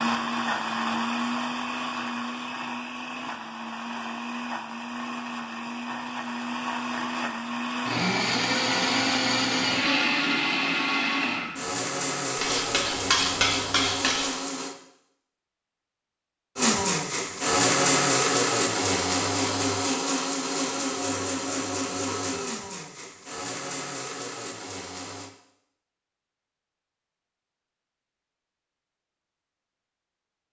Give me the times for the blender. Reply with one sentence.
You can hear the blender from 0.0 to 14.8 s and from 16.6 to 25.3 s.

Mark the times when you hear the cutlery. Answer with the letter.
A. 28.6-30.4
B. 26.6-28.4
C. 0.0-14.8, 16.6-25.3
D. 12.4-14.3
D.